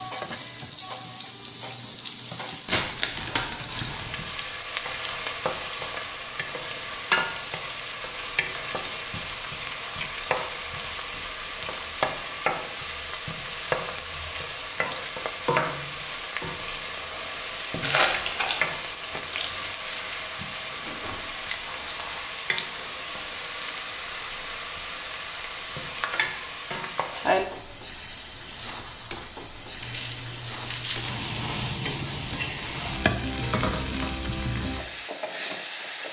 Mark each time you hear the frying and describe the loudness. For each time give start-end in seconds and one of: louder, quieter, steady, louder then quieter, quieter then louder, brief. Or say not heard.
0.0-36.0 steady.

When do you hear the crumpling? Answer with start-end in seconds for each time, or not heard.
2.6-4.2, 17.8-18.7, 29.8-31.8.